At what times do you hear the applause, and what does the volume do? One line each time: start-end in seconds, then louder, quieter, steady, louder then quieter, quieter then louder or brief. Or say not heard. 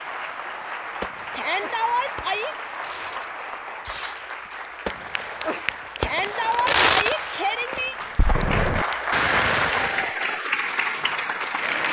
0.0-11.8 louder.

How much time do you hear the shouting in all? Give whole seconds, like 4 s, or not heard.
3 s.